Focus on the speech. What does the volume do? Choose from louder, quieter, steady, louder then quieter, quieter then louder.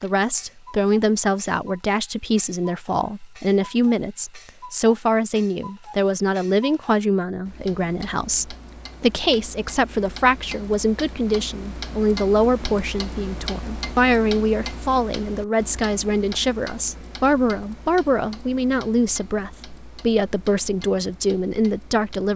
steady.